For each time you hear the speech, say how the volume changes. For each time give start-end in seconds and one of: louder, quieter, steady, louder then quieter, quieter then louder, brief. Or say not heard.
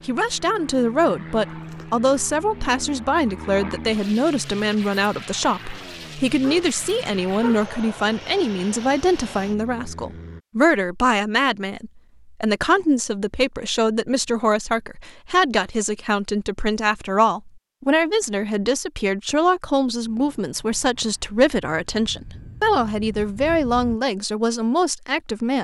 0.1-25.5 steady.